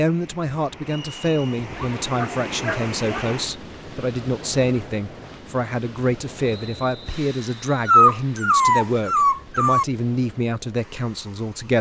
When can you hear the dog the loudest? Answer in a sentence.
The loudest moment of the dog is at 8 seconds.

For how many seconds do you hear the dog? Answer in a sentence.
The dog can be heard for 4 seconds in total.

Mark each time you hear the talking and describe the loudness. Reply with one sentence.
The talking can be heard from 0.0 to 11.7 s, at a steady volume.